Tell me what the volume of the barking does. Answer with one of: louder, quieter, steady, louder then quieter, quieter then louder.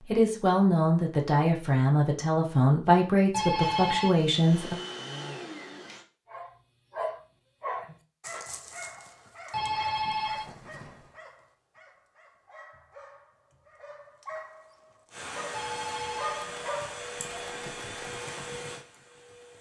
quieter then louder.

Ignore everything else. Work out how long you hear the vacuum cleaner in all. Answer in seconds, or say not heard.
7 s.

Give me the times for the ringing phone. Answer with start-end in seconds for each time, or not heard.
3.3-4.1, 9.5-11.1, 15.5-17.9.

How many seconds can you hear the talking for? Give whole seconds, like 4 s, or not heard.
5 s.